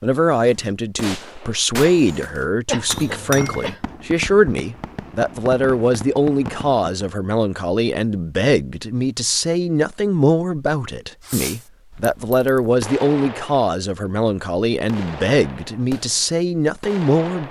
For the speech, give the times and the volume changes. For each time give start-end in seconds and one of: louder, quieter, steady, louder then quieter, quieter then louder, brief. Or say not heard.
0.0-17.4 steady.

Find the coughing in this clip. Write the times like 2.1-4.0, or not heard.
2.6-3.8.